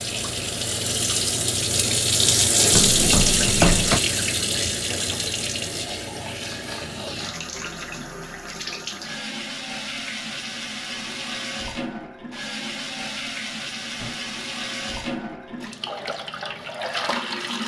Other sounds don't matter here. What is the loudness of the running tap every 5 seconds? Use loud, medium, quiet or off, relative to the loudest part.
loud, medium, medium, medium.